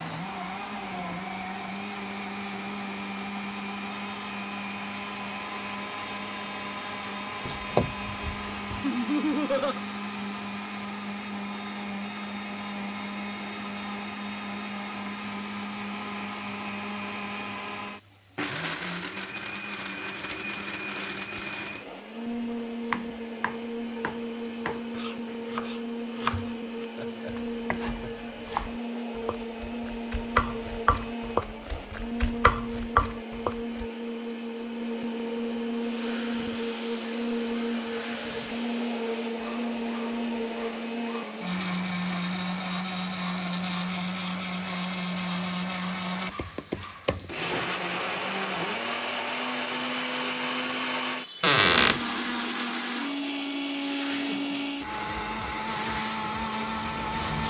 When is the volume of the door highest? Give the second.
52 s.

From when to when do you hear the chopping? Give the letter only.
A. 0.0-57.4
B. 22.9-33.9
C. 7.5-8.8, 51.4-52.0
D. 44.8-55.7
B.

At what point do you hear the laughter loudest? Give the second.
9 s.